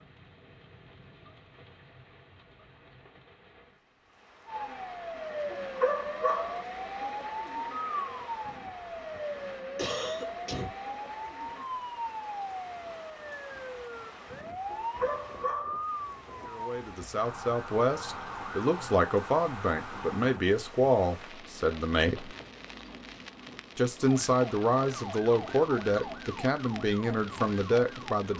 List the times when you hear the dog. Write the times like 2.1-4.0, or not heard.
5.5-6.7, 14.7-15.8.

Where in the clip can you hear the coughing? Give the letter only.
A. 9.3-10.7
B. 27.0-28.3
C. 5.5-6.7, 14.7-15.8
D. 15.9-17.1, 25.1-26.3
A.